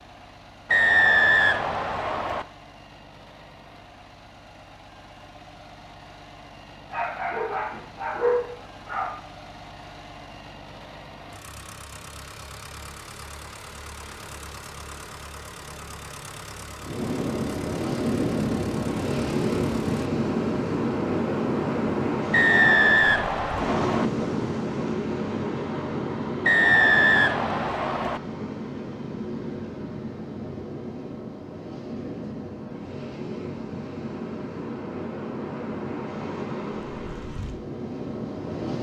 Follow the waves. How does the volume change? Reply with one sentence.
The loudness of the waves goes down.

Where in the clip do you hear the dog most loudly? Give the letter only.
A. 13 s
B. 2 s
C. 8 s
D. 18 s
C.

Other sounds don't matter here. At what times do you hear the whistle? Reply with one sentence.
You can hear the whistle from 0.7 to 2.5 s, from 22.3 to 24.1 s and from 26.4 to 28.2 s.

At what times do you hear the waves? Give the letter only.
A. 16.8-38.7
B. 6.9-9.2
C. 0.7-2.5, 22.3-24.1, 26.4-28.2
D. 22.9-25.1
A.